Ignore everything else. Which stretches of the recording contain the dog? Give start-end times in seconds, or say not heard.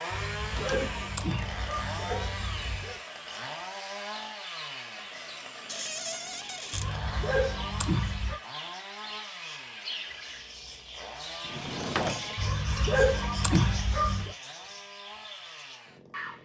0.1-3.0, 6.7-8.4, 12.3-14.3.